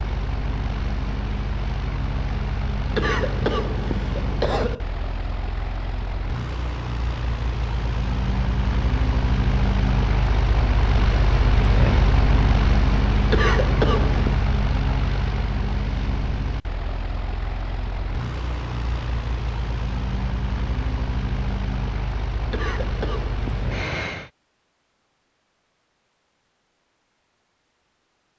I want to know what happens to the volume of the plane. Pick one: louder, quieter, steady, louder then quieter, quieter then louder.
louder then quieter.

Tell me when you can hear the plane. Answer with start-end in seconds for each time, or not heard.
0.0-24.3.